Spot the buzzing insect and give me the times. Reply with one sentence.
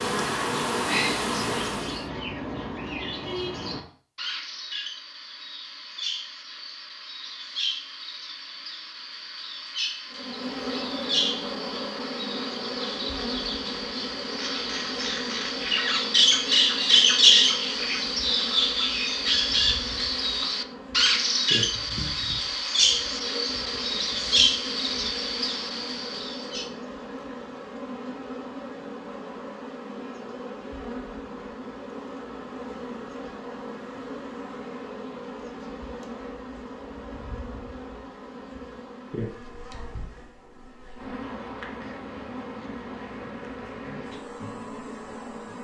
The buzzing insect can be heard from 0.0 to 2.0 s and from 10.1 to 45.6 s.